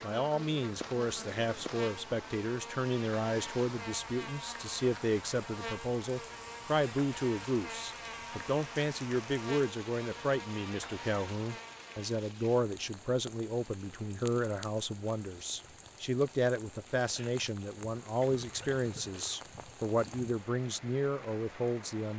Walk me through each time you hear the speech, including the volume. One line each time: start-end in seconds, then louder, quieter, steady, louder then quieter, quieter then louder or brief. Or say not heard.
0.0-22.1 steady.